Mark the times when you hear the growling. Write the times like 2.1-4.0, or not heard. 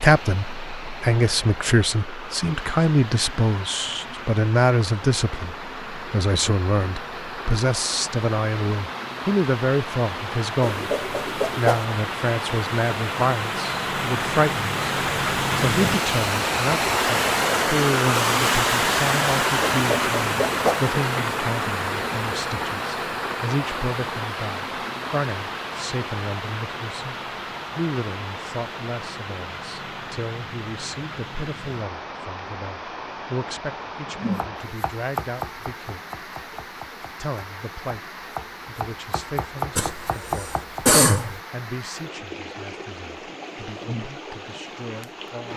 not heard.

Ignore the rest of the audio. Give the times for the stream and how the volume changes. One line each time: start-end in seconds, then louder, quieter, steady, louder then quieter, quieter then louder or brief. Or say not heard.
0.0-45.5 louder then quieter.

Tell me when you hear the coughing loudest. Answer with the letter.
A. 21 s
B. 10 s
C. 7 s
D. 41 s
D.